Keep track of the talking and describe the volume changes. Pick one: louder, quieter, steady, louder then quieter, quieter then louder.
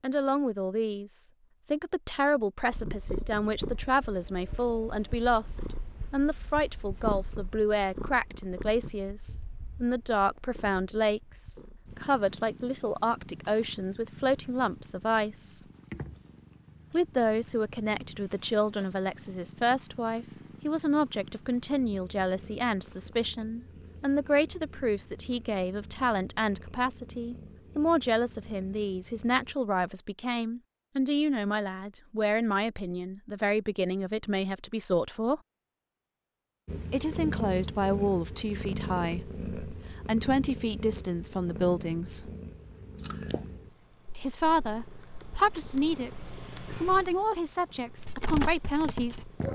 steady.